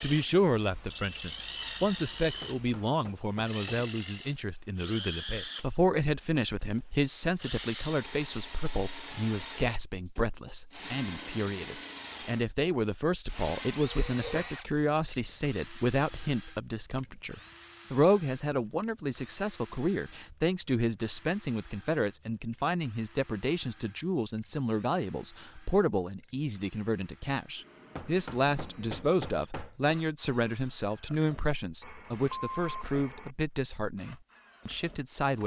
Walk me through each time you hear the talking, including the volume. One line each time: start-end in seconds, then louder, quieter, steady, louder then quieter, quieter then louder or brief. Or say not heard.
0.0-35.4 steady.